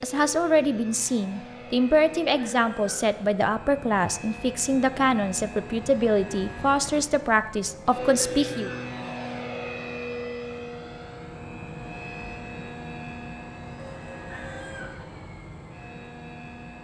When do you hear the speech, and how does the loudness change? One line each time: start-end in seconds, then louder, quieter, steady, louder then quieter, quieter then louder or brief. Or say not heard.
0.0-8.7 steady.